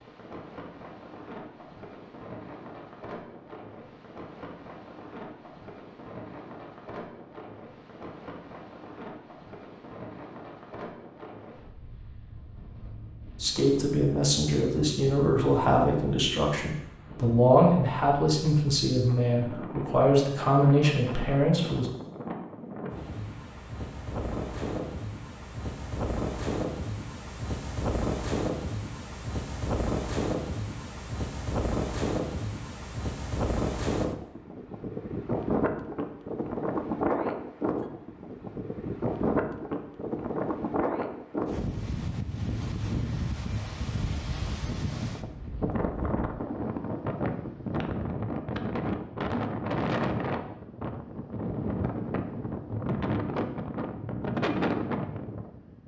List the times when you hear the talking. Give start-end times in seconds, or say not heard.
13.4-21.9.